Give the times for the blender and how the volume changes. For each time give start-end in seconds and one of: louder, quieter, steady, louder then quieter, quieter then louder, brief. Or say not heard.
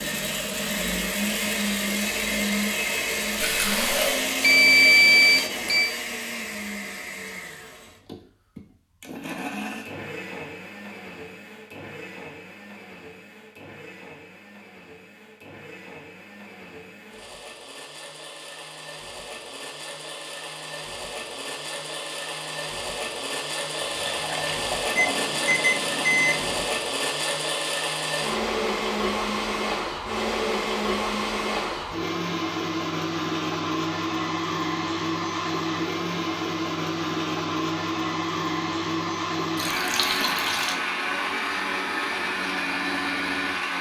0.0-43.7 quieter then louder.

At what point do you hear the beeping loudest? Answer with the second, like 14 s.
5 s.